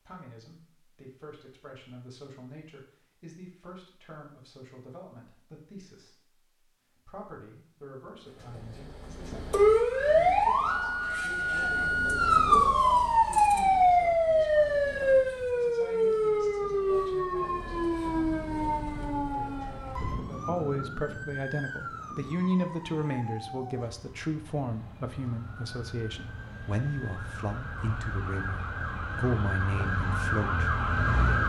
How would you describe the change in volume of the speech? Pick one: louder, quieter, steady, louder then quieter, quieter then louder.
louder.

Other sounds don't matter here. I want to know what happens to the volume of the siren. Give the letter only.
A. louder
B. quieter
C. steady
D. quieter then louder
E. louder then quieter
D.